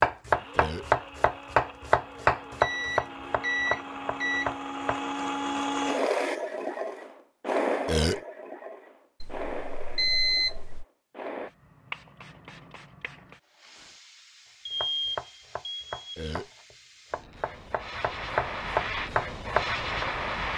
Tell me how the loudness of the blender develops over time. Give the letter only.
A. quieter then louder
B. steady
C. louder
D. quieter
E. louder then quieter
E.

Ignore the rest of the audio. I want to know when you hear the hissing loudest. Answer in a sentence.
The loudest moment of the hissing is at 20 seconds.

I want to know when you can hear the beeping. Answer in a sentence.
You can hear the beeping from 2.6 to 4.5 s, from 9.2 to 10.8 s and from 14.7 to 16.1 s.